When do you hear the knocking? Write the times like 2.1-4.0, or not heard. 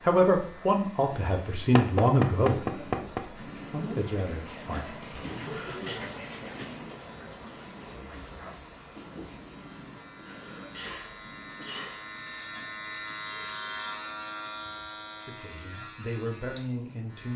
1.8-3.2.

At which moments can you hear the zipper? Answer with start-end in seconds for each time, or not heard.
not heard.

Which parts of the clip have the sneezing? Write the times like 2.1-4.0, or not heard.
5.2-6.0, 10.1-12.2.